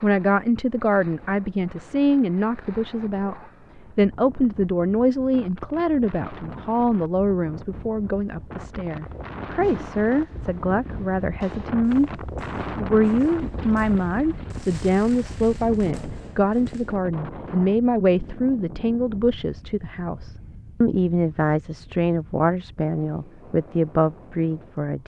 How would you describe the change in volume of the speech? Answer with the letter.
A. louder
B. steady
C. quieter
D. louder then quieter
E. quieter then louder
B.